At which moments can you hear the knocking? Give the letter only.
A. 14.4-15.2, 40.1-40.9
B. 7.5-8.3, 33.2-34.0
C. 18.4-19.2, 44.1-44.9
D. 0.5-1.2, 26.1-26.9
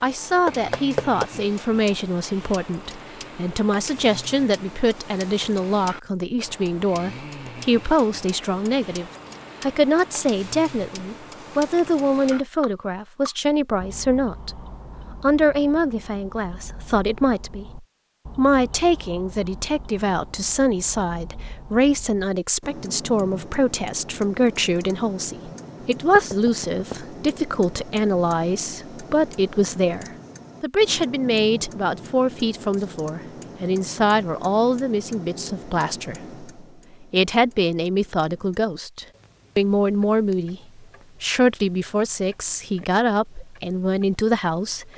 D.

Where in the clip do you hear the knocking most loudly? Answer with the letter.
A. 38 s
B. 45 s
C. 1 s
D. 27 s
C.